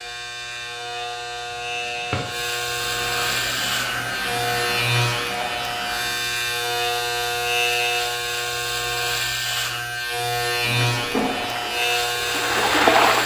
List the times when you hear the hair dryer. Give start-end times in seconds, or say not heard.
2.6-6.4.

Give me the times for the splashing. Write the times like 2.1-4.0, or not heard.
11.2-13.2.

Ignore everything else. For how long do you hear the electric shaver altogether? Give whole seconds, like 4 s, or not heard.
13 s.